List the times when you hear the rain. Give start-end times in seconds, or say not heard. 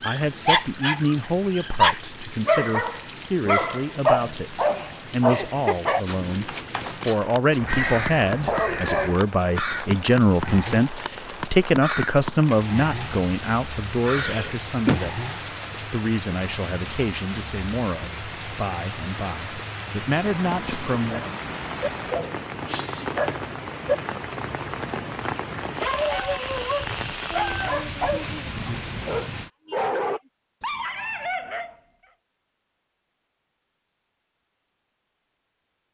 0.0-29.5.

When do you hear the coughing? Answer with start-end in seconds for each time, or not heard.
14.1-15.0.